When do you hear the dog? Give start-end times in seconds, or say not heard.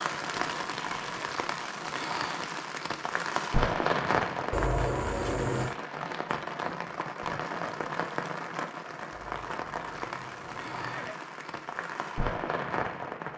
not heard.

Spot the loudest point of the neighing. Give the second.
5 s.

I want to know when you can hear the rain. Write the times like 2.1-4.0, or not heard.
0.0-13.3.